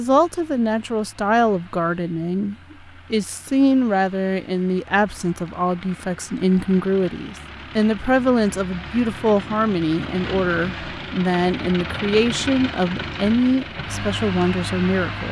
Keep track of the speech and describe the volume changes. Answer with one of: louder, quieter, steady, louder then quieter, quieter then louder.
steady.